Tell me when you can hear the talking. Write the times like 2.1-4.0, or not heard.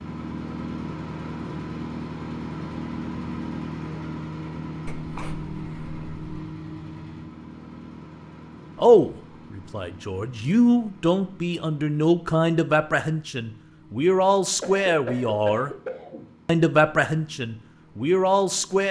8.8-15.7, 16.4-18.8.